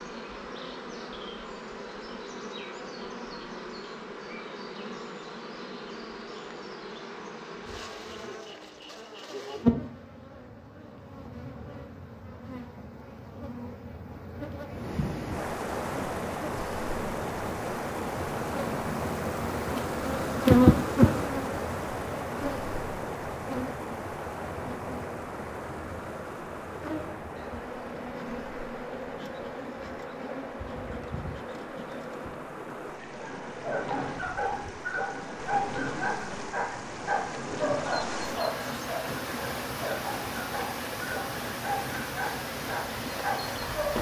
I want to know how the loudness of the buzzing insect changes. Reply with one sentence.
The loudness of the buzzing insect goes up, then down.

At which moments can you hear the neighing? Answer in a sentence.
You can't hear the neighing here.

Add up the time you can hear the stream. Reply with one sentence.
The stream can be heard for 29 seconds in total.